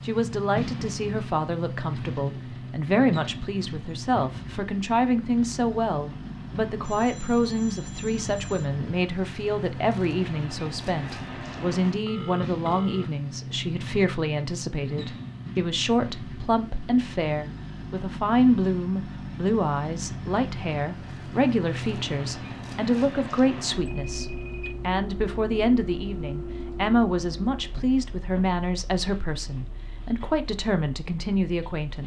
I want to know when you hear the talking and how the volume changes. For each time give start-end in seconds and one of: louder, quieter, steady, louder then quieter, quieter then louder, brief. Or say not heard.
0.1-32.0 steady.